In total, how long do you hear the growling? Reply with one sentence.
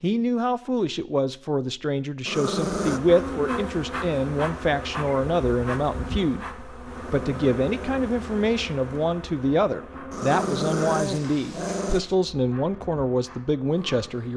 You can hear the growling for 4 seconds altogether.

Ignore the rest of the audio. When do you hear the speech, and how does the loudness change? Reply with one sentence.
You can hear the speech from 0.0 to 14.3 s, at a steady volume.